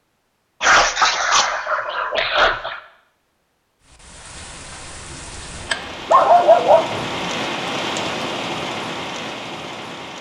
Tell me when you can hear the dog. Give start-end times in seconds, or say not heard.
0.6-2.8, 5.7-7.3.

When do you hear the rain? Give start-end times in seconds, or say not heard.
3.8-10.1.